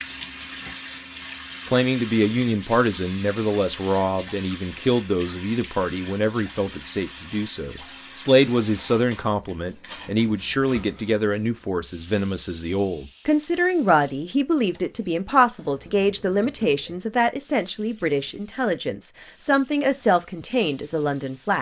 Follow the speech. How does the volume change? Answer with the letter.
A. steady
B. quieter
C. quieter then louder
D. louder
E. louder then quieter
A.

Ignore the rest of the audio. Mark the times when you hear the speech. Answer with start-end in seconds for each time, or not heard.
1.6-21.5.